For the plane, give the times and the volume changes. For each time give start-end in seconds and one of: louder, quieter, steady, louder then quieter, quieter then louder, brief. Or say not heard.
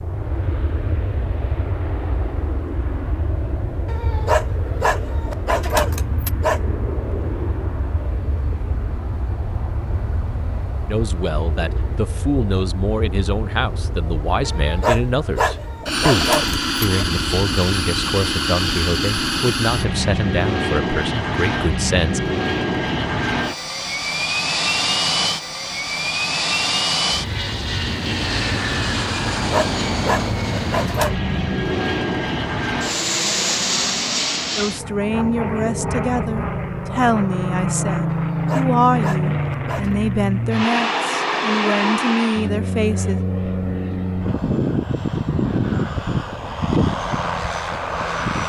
0.0-48.4 louder.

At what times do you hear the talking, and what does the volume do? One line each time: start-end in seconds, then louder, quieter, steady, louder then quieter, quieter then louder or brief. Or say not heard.
10.8-22.2 steady
34.5-43.2 steady.